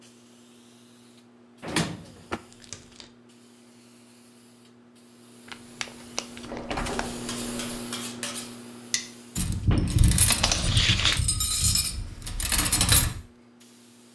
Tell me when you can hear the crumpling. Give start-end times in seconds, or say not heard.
2.5-3.1, 5.5-7.0, 10.2-11.2.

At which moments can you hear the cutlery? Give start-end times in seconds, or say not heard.
7.1-13.2.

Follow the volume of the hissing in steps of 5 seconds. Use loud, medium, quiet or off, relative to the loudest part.
quiet, loud, quiet.